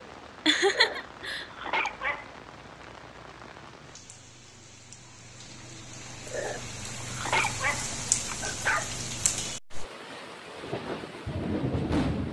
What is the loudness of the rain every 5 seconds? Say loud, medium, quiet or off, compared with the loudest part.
quiet, loud, loud.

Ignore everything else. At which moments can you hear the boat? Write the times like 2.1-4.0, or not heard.
not heard.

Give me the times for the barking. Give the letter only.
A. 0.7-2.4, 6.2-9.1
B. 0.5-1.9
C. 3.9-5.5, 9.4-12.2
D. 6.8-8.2
A.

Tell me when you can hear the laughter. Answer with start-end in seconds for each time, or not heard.
0.5-1.9.